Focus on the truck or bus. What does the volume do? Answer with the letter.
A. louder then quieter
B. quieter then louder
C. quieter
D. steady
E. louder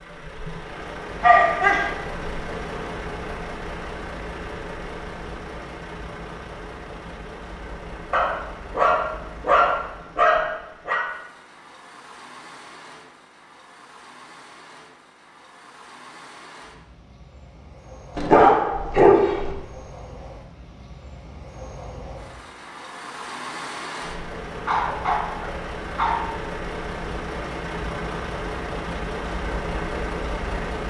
B.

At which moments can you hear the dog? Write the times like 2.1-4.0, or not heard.
1.2-1.9, 8.1-11.1, 18.1-19.5, 24.6-26.1.